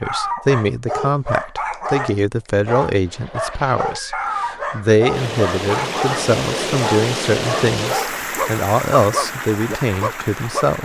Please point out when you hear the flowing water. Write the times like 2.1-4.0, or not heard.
5.1-10.8.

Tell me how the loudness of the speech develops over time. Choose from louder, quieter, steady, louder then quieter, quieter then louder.
steady.